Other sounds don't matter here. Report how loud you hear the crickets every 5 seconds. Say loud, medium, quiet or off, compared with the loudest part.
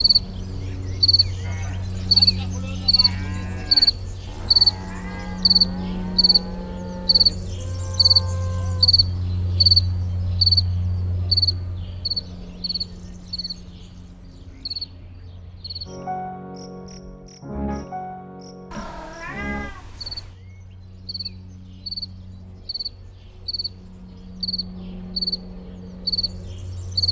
loud, loud, medium, quiet, quiet, medium.